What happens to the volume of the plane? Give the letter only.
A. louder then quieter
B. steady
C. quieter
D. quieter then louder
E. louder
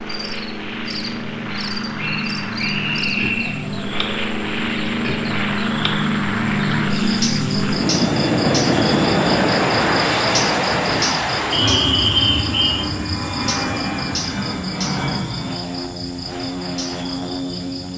A.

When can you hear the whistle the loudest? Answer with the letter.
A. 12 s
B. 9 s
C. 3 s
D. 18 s
A.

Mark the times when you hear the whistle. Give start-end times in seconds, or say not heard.
1.9-3.6, 11.5-12.7.